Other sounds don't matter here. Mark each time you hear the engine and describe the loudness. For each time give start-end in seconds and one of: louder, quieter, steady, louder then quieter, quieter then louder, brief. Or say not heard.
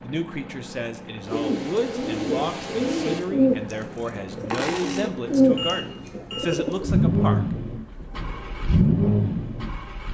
0.0-10.1 louder.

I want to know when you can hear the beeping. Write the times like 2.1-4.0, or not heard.
5.3-6.8.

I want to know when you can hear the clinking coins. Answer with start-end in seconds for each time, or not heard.
3.2-5.2.